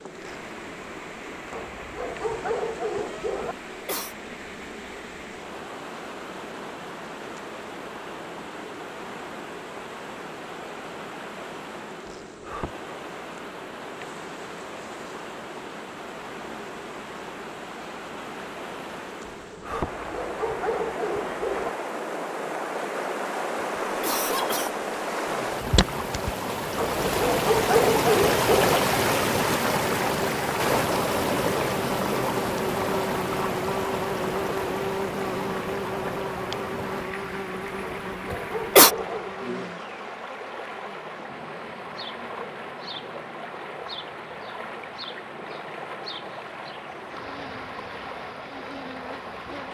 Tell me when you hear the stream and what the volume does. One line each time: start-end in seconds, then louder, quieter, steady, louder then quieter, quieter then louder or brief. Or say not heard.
0.0-49.6 louder then quieter.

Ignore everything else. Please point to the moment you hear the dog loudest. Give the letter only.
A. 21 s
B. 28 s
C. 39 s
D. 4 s
B.